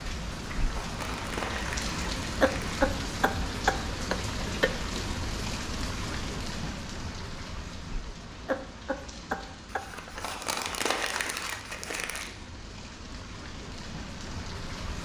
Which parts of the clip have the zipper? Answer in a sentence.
The zipper can't be heard in this clip.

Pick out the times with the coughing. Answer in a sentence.
The coughing can be heard from 2.4 to 4.8 s and from 8.4 to 9.9 s.